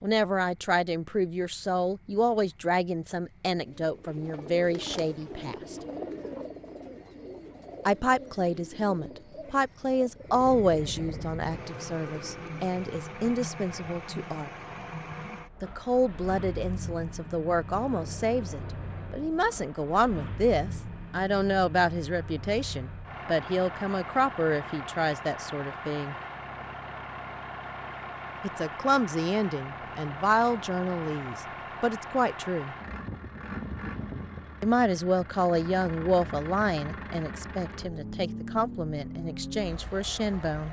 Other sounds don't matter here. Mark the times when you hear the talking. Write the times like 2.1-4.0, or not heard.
0.0-5.8, 7.8-14.5, 15.6-26.1, 28.4-32.8, 34.6-40.6.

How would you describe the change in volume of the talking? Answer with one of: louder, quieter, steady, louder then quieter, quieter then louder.
steady.